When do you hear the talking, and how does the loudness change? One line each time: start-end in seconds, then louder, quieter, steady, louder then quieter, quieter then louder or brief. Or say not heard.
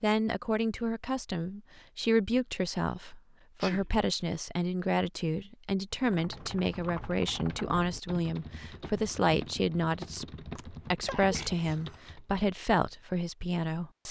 0.0-14.0 steady.